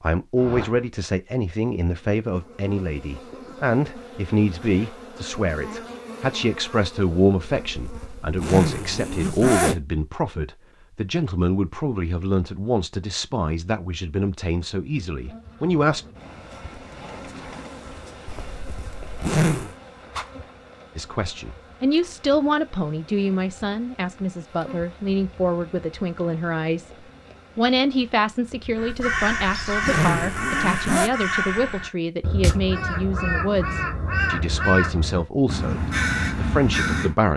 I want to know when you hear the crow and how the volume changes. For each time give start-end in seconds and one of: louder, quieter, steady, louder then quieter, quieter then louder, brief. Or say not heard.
28.8-37.1 steady.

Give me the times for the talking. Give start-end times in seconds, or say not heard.
0.0-16.1, 20.9-37.3.